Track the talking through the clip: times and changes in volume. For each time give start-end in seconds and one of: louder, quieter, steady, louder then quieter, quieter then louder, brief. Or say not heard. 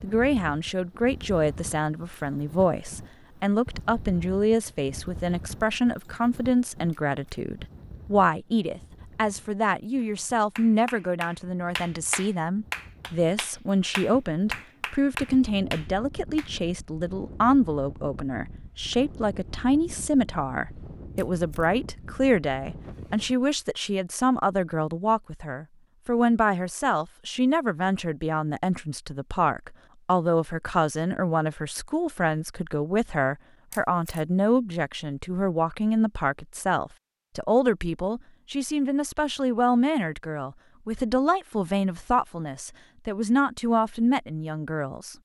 0.0-45.1 steady.